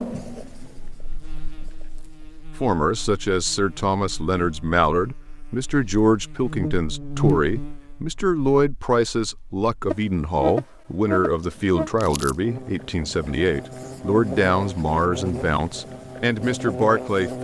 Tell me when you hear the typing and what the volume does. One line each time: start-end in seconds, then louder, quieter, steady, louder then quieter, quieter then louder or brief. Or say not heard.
not heard.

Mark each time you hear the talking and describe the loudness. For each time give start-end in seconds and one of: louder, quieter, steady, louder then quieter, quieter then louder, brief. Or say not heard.
2.6-17.3 steady.